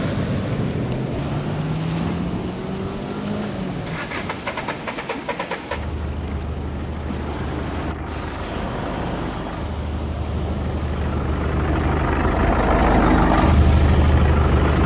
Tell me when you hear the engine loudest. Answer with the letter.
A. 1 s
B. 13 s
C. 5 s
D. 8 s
B.